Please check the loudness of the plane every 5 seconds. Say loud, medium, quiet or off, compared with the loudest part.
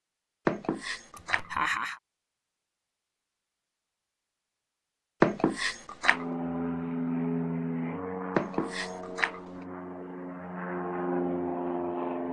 off, loud, loud.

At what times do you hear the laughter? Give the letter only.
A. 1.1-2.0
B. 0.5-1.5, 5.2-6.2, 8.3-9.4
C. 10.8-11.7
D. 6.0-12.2
A.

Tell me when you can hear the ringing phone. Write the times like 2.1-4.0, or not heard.
0.5-1.5, 5.2-6.2, 8.3-9.4.